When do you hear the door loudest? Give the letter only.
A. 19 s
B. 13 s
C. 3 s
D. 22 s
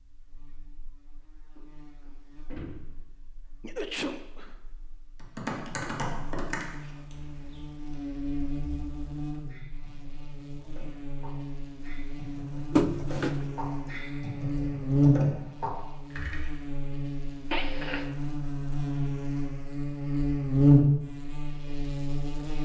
B.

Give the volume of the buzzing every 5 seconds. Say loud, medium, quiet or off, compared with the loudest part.
quiet, quiet, medium, medium, loud.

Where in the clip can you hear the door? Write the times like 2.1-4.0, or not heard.
2.5-3.0, 12.7-13.4.